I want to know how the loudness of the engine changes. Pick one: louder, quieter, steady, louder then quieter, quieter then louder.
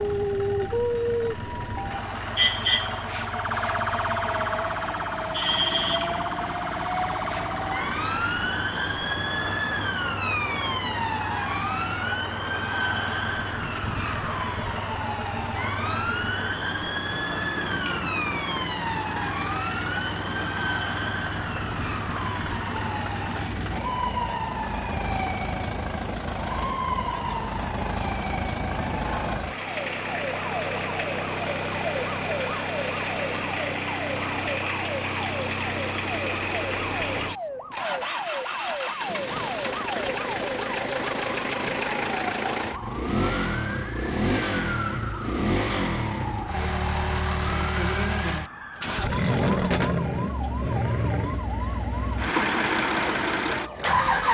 louder.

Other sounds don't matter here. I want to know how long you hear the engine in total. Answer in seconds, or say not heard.
54 s.